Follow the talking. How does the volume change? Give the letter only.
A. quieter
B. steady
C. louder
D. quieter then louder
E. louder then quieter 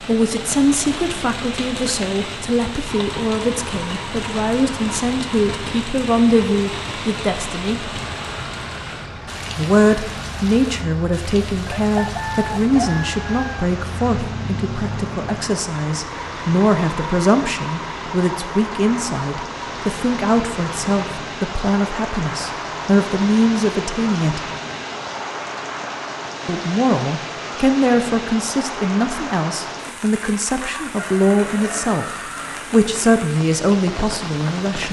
B.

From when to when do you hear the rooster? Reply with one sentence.
The rooster can be heard from 11.7 to 13.7 s and from 30.6 to 32.6 s.